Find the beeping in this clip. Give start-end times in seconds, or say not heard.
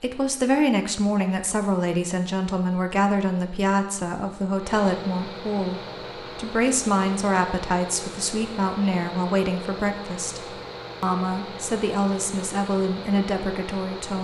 not heard.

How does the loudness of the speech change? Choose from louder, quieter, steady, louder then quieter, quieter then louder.
steady.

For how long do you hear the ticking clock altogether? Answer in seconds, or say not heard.
not heard.